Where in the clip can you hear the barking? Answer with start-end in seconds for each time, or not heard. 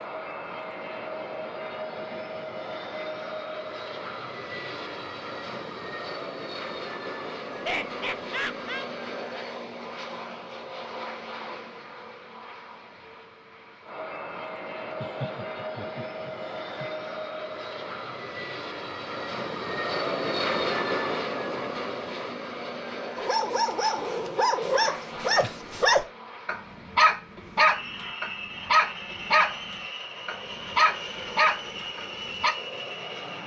23.1-32.5.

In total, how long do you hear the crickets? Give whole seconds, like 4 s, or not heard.
not heard.